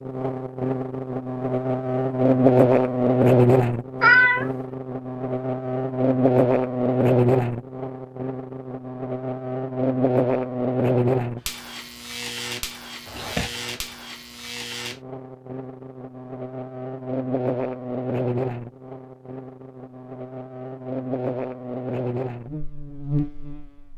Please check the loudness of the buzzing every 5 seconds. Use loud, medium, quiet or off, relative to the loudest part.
loud, loud, medium, medium, medium.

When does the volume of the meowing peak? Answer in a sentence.
The volume of the meowing peaks at 4 seconds.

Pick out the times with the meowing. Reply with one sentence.
The meowing can be heard from 4.0 to 4.5 s and from 13.1 to 13.6 s.